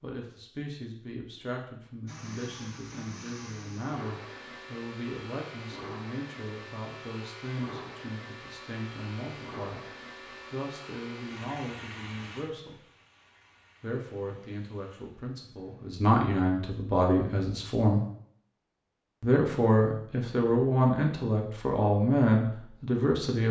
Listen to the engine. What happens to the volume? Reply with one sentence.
The loudness of the engine goes down.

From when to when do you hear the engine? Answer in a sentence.
You can hear the engine from 2.0 to 16.1 s.